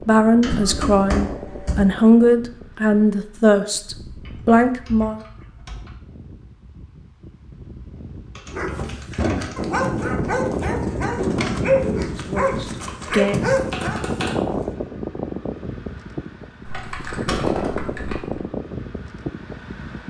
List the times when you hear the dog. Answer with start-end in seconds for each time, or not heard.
8.4-14.8.